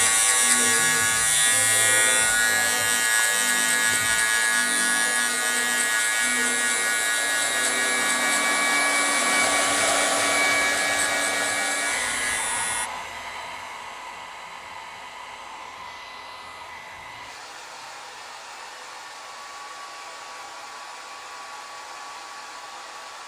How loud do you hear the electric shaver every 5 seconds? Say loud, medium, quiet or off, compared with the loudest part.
loud, loud, medium, off, off.